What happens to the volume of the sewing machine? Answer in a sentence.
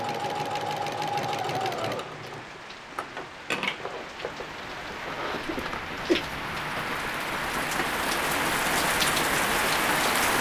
The loudness of the sewing machine goes down.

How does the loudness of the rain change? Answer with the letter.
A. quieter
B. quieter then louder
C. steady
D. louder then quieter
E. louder
E.